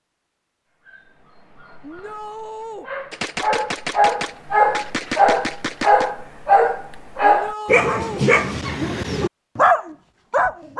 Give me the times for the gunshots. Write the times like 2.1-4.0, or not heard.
3.1-6.1.